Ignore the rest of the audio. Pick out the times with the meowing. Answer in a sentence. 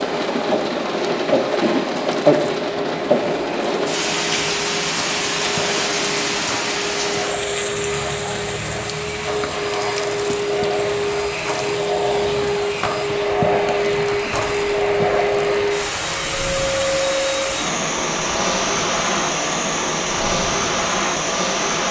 The meowing can't be heard in this clip.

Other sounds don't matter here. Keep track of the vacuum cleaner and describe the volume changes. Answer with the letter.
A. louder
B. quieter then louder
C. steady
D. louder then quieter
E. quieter
A.